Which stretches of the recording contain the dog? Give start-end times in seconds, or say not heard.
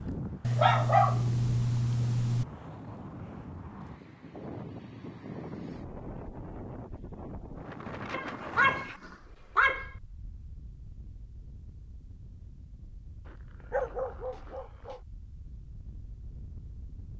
0.4-2.5, 8.1-9.9, 13.2-15.0.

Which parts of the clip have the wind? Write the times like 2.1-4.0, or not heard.
0.0-17.1.